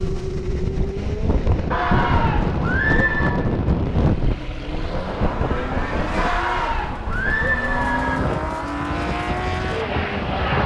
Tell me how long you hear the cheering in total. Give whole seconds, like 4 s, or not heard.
4 s.